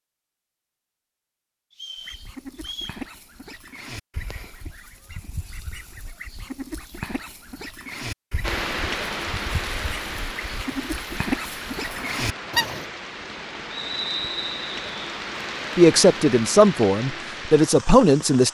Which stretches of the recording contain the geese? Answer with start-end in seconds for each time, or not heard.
2.0-12.8.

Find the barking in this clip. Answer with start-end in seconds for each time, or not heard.
not heard.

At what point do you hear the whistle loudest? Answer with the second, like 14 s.
14 s.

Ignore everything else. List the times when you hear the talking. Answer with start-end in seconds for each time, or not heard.
15.8-18.4.